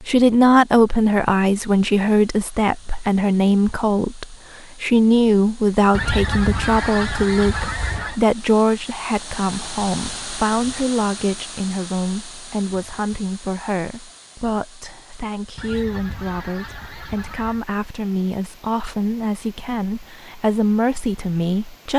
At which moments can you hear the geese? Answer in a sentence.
The geese can be heard from 5.9 to 8.2 s and from 15.6 to 17.6 s.